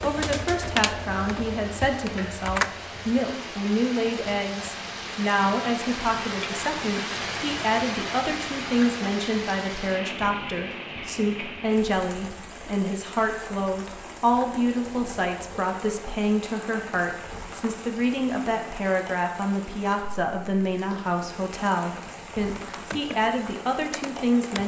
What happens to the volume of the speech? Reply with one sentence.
The loudness of the speech stays about the same.